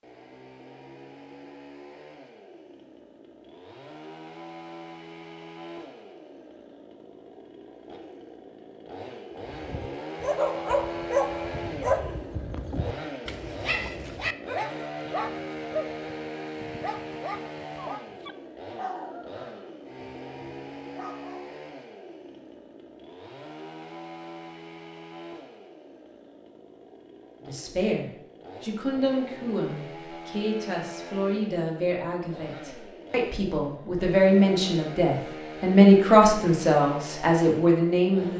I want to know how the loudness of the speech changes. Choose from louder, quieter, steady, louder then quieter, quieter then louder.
louder.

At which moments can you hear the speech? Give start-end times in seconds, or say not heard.
27.4-38.3.